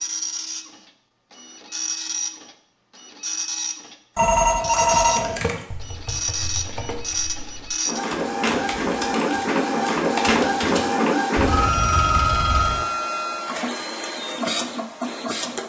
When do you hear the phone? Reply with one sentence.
The phone can be heard from 4.2 to 5.4 s and from 11.3 to 12.8 s.